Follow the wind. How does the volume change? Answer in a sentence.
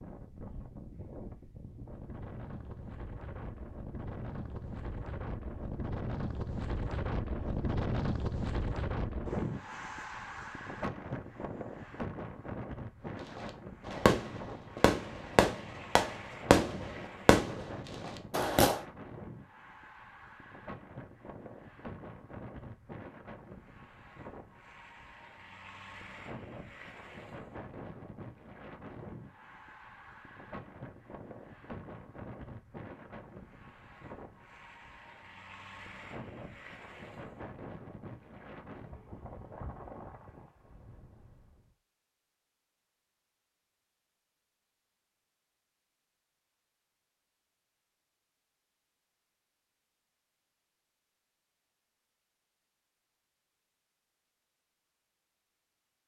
The loudness of the wind goes down.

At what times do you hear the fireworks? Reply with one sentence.
You can hear the fireworks from 13.3 to 18.8 s.